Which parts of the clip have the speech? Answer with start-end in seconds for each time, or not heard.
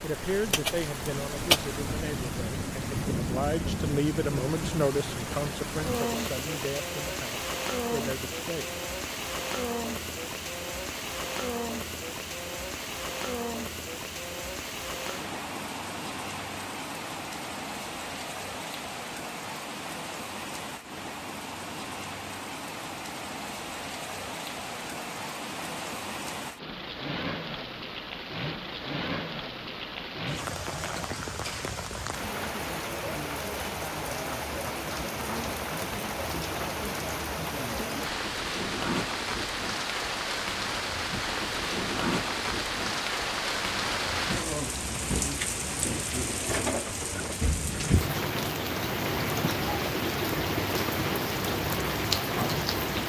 0.0-8.8.